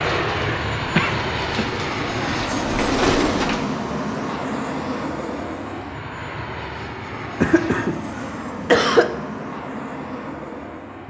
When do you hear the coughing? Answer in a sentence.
You can hear the coughing from 0.9 to 1.6 s and from 7.1 to 9.1 s.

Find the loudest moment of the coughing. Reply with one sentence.
The loudest moment of the coughing is at 9 seconds.